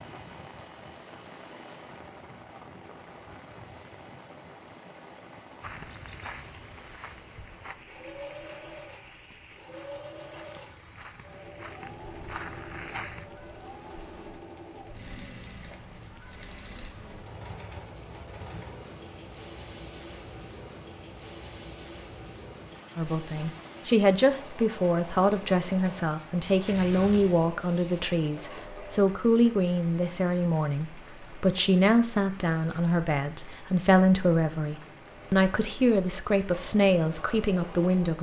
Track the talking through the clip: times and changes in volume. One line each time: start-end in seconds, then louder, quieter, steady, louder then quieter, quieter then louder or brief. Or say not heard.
22.9-38.1 steady.